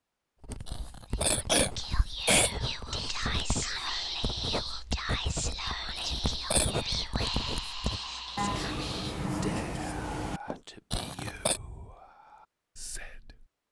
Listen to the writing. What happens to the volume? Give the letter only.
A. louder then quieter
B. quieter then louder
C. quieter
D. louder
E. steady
D.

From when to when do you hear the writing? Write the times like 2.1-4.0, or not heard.
0.4-10.6.